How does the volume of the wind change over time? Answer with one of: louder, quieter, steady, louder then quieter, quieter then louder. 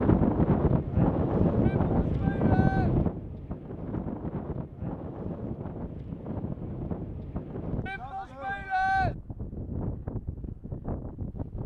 quieter.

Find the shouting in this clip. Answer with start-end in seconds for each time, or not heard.
1.6-2.9, 7.8-9.2.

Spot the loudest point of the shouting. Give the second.
9 s.